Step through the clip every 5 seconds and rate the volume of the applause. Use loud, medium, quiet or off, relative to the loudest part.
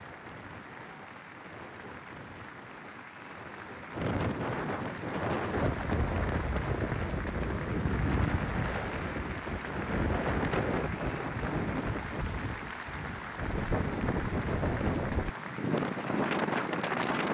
medium, loud, loud, loud.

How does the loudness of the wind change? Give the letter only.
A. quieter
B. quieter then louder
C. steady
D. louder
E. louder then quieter
D.